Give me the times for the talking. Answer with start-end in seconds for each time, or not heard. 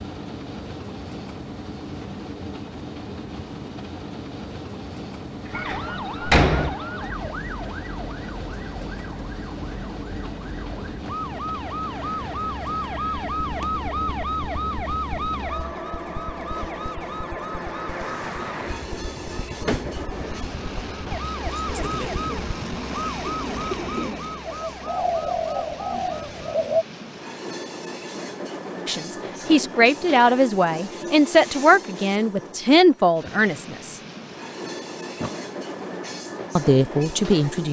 28.9-34.0, 36.5-37.6.